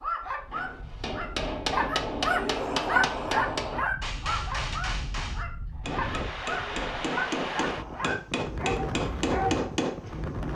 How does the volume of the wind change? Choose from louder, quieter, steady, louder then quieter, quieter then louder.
louder.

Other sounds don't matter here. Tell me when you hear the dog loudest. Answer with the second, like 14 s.
3 s.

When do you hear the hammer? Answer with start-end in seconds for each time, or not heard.
0.5-10.0.